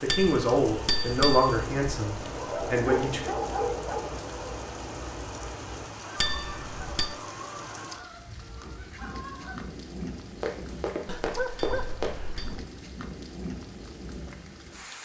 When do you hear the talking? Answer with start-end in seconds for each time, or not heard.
0.0-3.2.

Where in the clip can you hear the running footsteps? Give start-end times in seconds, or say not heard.
10.4-12.1.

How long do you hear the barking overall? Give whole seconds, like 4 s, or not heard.
3 s.